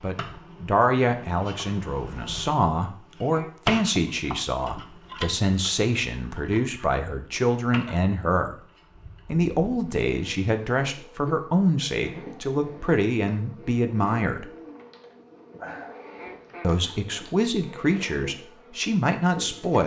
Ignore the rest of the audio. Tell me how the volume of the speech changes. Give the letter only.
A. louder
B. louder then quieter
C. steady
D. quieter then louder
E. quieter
C.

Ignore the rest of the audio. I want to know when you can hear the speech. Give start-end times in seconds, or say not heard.
0.0-8.6, 9.3-14.4, 16.6-19.8.